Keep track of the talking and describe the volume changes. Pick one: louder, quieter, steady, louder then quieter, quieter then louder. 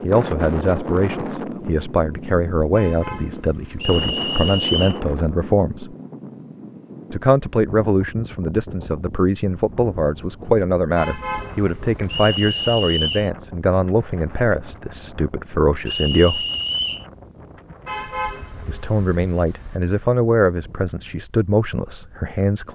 steady.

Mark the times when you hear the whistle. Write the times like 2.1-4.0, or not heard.
3.8-5.0, 12.1-13.3, 15.8-17.1.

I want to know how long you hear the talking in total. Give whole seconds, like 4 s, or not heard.
19 s.